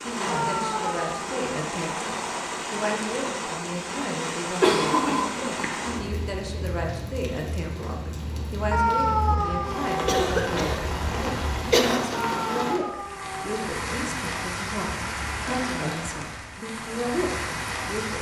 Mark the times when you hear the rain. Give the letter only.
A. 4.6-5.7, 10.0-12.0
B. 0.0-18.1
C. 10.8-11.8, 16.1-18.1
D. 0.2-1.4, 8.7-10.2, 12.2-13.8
B.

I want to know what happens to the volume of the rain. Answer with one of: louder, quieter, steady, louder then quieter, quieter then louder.
steady.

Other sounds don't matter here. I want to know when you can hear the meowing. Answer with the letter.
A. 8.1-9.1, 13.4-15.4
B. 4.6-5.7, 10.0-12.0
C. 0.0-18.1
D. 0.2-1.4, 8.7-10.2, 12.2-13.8
D.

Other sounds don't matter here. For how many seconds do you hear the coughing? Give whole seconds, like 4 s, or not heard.
3 s.